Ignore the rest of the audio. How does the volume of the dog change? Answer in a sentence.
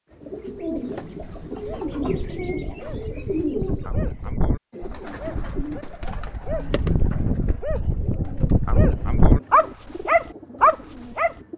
The loudness of the dog goes up.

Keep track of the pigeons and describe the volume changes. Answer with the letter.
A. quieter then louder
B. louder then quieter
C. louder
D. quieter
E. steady
D.